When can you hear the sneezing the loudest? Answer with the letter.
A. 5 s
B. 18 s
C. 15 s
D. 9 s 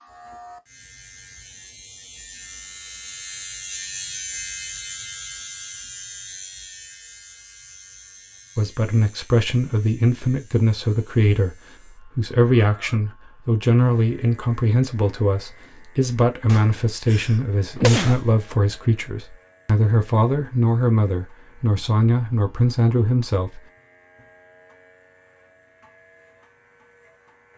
B.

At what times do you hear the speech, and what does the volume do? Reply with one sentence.
You can hear the speech from 8.6 to 23.6 s, at a steady volume.